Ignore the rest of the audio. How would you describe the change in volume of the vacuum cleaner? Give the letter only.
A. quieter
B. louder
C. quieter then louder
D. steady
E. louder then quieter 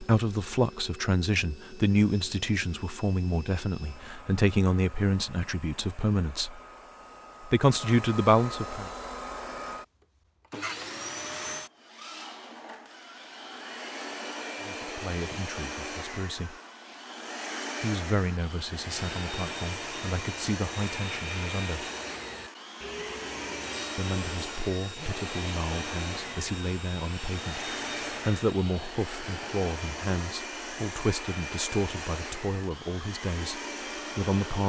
B.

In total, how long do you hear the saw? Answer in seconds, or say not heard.
10 s.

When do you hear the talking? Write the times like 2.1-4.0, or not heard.
0.0-6.6, 7.5-8.9, 14.6-16.6, 17.8-21.9, 23.9-34.6.